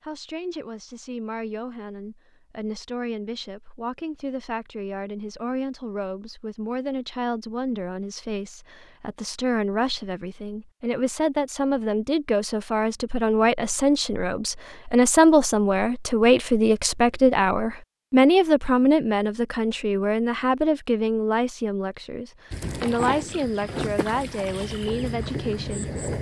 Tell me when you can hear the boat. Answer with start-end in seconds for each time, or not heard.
22.5-26.1.